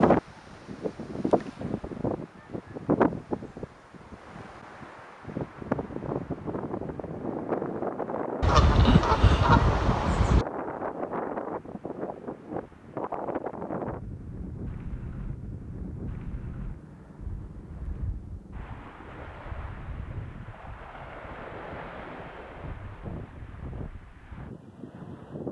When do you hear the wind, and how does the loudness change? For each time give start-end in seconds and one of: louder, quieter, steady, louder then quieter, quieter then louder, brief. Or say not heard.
0.0-25.4 quieter.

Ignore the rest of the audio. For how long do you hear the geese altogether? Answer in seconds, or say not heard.
2 s.